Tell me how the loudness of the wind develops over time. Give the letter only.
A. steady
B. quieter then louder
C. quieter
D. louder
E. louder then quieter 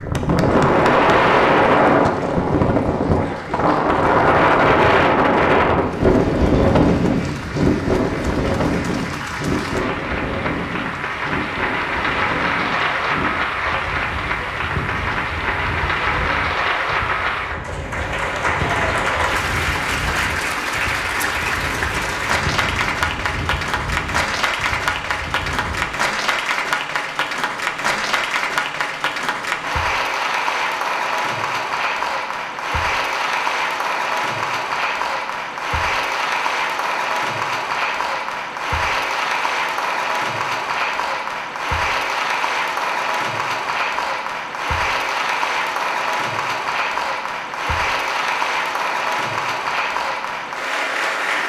C.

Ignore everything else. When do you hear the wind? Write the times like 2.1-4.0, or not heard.
0.0-26.0.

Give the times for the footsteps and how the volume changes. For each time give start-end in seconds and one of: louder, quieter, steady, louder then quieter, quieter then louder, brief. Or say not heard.
not heard.